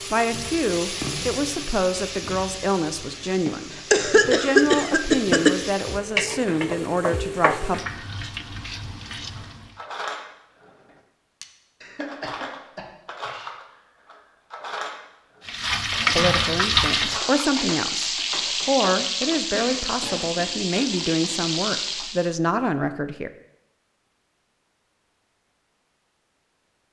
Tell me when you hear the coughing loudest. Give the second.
5 s.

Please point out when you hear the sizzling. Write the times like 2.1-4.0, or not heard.
0.0-9.7, 15.4-22.4.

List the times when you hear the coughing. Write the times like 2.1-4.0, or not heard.
3.5-5.5, 11.8-13.5, 19.5-21.4.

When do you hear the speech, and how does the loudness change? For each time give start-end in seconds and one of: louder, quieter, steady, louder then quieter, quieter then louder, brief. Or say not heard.
0.1-7.8 steady
16.1-23.3 steady.